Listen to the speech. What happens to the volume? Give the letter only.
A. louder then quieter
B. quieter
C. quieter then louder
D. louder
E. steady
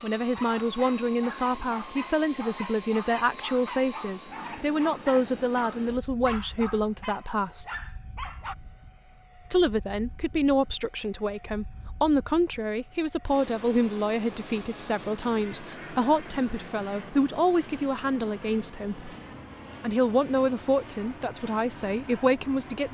E.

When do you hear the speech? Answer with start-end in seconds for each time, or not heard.
0.0-7.7, 9.5-19.1, 19.8-22.9.